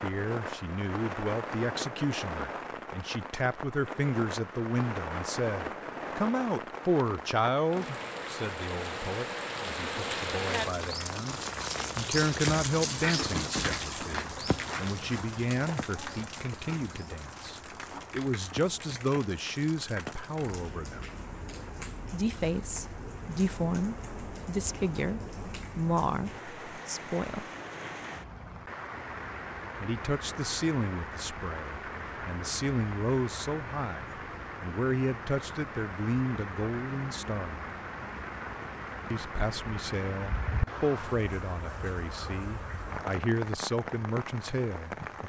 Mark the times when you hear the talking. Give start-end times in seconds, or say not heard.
0.0-21.1, 22.1-27.4, 29.8-37.6, 39.1-45.2.